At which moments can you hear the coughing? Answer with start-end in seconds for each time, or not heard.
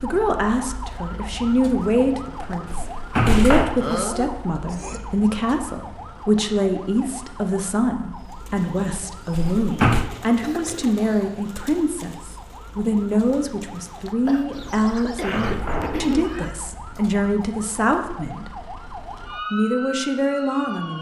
3.8-5.3, 10.4-11.4, 14.2-16.2.